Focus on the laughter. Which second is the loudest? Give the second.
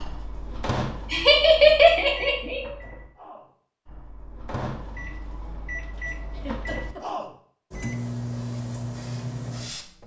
2 s.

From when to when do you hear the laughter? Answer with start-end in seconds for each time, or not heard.
1.1-2.6, 6.3-7.2.